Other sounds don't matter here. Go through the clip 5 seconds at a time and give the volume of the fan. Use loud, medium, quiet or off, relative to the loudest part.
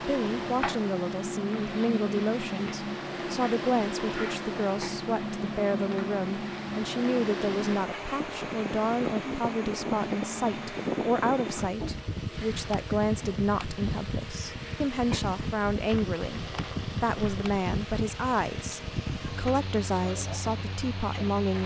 loud, loud, loud, loud, medium.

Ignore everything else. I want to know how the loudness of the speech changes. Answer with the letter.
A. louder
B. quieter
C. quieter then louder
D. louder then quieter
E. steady
E.